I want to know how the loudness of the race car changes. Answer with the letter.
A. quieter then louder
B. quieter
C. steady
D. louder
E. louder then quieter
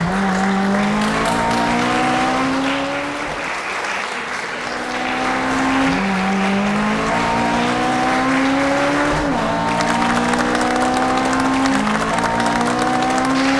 A.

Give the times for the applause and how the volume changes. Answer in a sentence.
You can hear the applause from 0.0 to 13.5 s, at a steady volume.